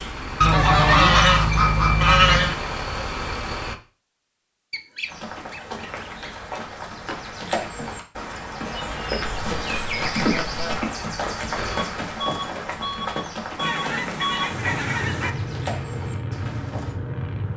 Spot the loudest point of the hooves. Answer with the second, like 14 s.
10 s.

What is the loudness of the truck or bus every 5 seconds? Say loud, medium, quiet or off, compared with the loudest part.
loud, off, loud, loud.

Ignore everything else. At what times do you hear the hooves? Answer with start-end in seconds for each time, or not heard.
5.0-16.9.